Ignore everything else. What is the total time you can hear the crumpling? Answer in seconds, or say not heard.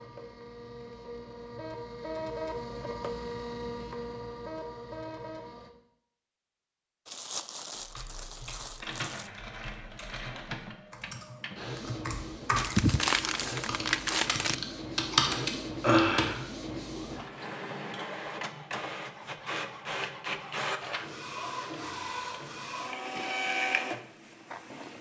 4 s.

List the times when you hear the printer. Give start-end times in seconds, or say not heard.
0.0-5.7, 8.8-24.9.